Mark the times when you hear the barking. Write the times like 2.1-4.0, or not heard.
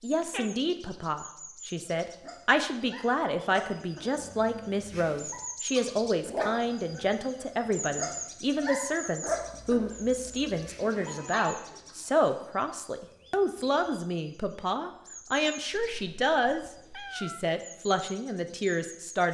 2.0-11.5.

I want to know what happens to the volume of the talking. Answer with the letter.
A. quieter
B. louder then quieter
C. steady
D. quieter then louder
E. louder
C.